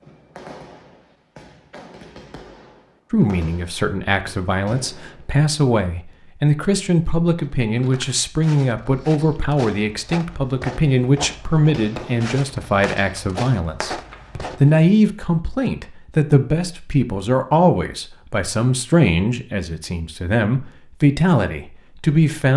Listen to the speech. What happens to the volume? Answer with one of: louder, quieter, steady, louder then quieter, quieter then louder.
steady.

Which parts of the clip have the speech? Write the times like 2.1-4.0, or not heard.
3.1-22.5.